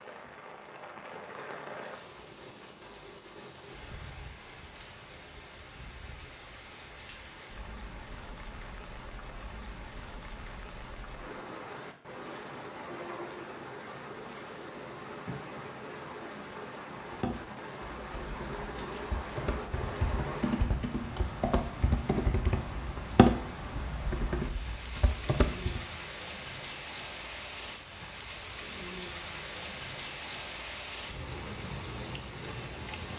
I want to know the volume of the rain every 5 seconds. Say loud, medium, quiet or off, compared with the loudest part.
medium, medium, loud, loud, loud, loud, loud.